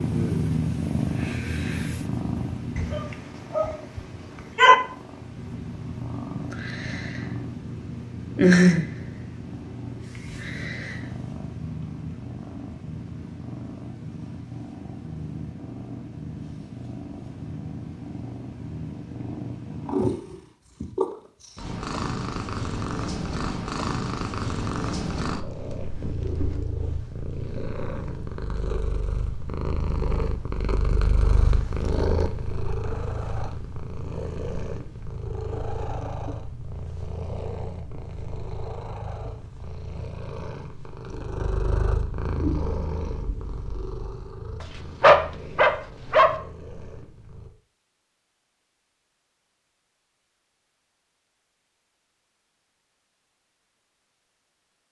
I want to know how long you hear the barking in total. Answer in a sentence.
You can hear the barking for 4 seconds altogether.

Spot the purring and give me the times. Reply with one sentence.
The purring can be heard from 0.0 to 47.5 s.